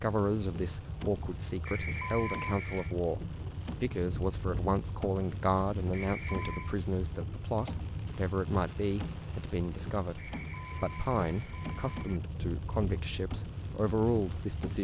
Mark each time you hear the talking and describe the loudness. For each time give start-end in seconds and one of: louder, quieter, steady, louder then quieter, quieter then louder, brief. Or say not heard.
0.0-14.7 steady.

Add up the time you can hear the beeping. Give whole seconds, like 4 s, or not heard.
4 s.